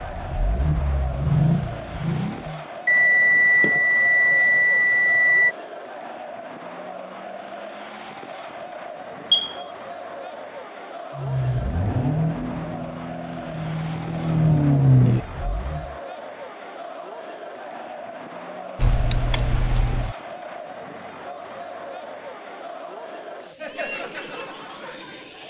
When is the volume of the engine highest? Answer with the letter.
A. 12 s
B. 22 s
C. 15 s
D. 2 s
C.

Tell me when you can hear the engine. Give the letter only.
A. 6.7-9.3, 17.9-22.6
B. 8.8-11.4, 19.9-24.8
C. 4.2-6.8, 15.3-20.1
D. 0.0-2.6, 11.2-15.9
D.